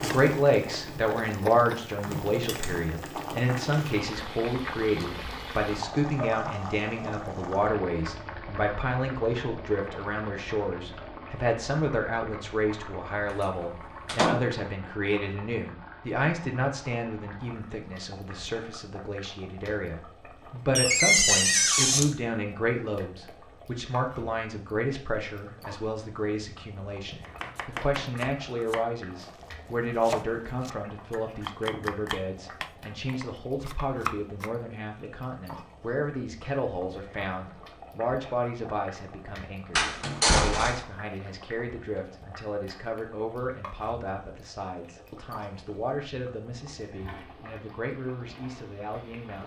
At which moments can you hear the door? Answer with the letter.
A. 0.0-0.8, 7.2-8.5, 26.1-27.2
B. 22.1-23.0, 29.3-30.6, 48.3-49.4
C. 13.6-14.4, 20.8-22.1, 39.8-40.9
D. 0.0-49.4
C.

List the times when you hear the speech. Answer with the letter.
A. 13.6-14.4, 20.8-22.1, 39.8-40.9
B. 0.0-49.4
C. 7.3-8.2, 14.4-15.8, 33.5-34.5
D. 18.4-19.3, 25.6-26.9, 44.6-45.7
B.